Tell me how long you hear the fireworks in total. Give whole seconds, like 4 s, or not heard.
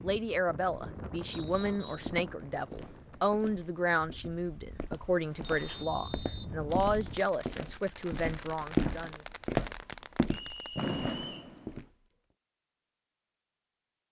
5 s.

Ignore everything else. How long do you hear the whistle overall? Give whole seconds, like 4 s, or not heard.
3 s.